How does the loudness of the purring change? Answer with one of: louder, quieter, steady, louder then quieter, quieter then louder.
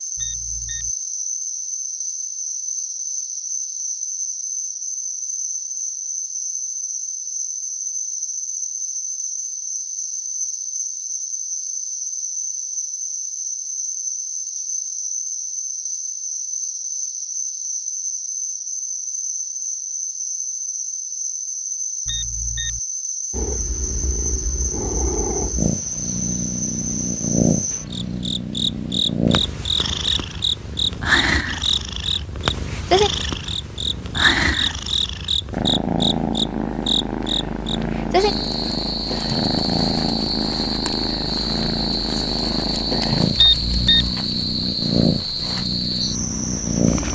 steady.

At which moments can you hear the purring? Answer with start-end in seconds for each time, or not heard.
23.3-47.1.